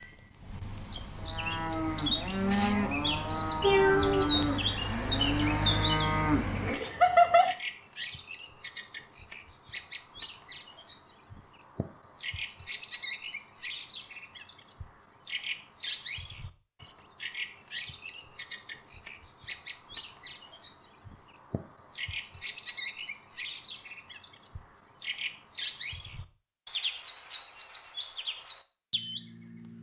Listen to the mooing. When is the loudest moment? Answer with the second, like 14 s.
7 s.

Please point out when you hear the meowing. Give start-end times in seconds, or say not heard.
3.6-4.5.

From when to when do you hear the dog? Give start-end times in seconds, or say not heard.
not heard.